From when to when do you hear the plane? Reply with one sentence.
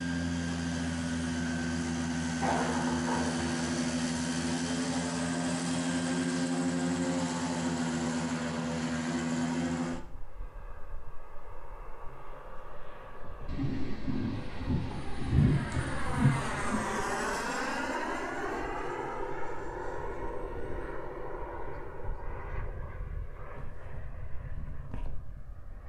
The plane can be heard from 0.0 to 25.8 s.